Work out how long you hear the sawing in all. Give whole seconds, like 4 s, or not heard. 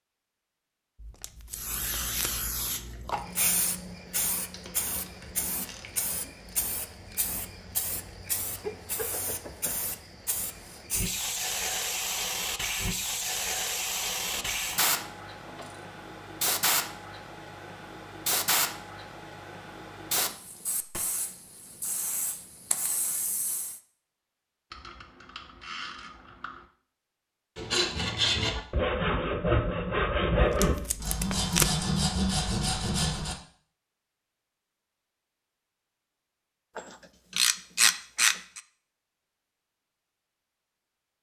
6 s.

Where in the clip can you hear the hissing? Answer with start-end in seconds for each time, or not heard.
1.5-23.8.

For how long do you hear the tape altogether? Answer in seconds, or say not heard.
3 s.